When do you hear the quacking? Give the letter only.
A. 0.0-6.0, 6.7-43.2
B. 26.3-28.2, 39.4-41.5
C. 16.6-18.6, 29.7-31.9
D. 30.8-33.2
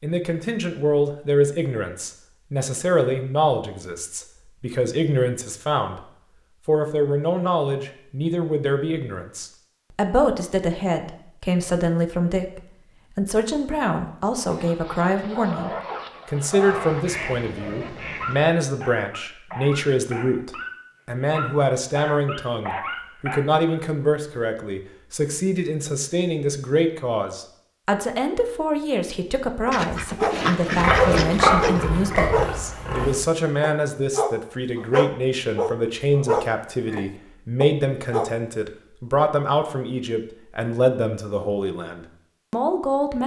C.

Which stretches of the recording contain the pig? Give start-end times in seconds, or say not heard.
30.8-33.2.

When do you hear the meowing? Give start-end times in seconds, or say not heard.
not heard.